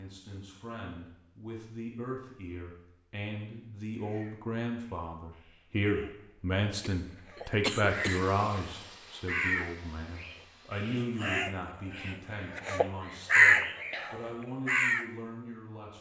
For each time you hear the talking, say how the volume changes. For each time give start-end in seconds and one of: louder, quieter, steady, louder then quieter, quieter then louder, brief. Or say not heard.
0.0-15.9 louder then quieter.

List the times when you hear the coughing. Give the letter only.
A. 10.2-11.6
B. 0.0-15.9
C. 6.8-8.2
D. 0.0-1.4
C.